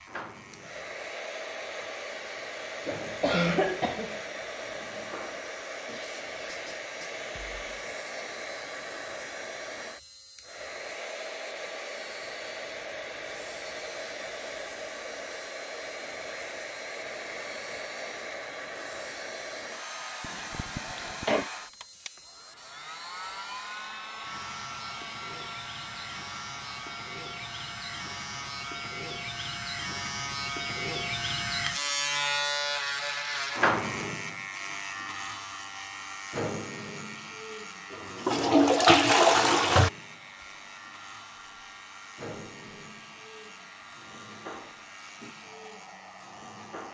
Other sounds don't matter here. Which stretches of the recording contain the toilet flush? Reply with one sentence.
The toilet flush can be heard from 37.9 to 39.9 s.